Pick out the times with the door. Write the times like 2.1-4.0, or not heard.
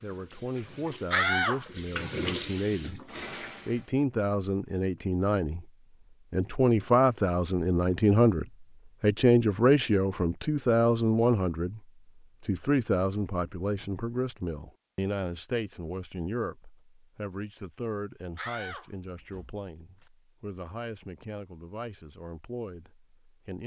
1.1-1.6, 18.4-20.1.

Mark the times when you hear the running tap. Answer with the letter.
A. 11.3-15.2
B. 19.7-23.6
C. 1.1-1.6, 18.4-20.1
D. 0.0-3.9
D.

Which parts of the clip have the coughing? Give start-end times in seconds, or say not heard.
not heard.